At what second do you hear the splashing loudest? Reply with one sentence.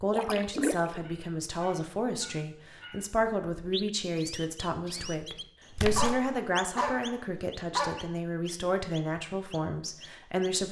The volume of the splashing peaks at 1 second.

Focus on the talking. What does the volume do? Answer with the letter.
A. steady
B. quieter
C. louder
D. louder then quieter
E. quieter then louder
A.